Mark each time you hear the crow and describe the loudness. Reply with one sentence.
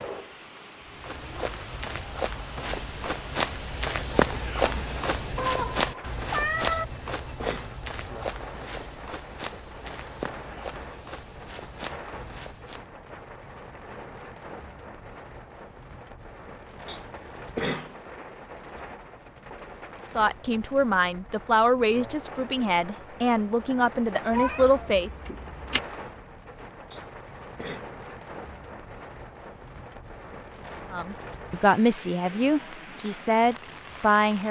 The crow can't be heard in this clip.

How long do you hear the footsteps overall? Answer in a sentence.
The footsteps can be heard for 12 seconds in total.